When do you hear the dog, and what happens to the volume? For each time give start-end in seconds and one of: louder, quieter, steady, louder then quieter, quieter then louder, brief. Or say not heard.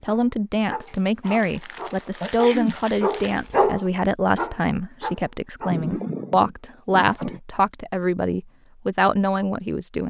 0.1-5.8 louder then quieter.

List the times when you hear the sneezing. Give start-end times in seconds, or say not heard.
2.2-2.8, 5.7-7.4.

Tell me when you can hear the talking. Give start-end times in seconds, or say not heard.
0.0-10.0.